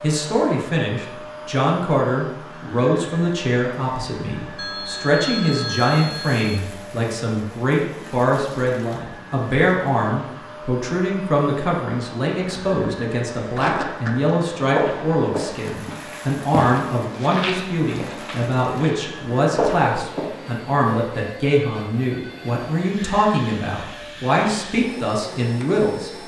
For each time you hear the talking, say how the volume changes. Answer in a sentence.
The talking can be heard from 0.0 to 26.1 s, at a steady volume.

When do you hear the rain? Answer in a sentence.
The rain can't be heard in this clip.